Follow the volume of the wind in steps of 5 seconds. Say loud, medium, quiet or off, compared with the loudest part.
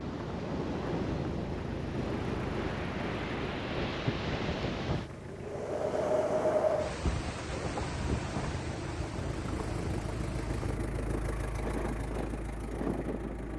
loud, loud, medium.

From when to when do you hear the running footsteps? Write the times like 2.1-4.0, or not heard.
not heard.